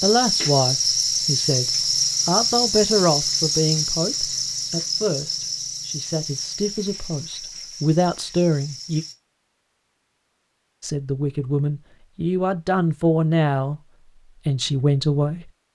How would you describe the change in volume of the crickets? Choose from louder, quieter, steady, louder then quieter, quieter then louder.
quieter.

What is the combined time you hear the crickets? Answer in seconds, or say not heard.
9 s.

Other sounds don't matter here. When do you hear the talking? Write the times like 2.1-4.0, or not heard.
0.0-9.1, 10.8-13.8, 14.4-15.7.